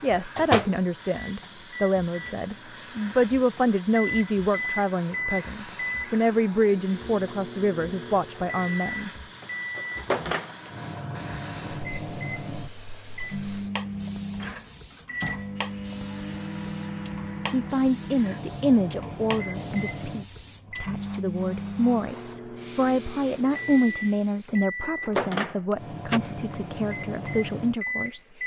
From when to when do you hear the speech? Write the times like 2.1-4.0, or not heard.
0.0-9.1, 17.5-28.3.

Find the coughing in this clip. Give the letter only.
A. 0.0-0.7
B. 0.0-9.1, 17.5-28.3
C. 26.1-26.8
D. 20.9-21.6
C.